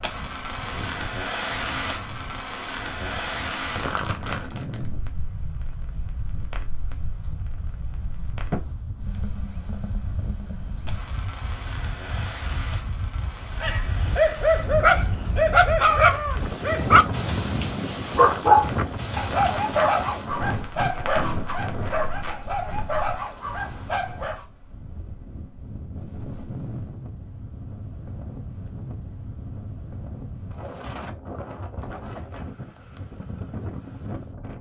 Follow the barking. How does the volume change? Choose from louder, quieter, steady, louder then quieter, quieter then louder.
quieter.